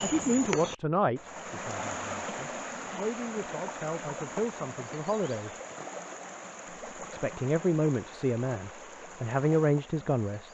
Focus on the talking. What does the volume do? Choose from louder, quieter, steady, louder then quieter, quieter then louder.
quieter then louder.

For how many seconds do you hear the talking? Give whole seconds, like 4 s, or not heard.
9 s.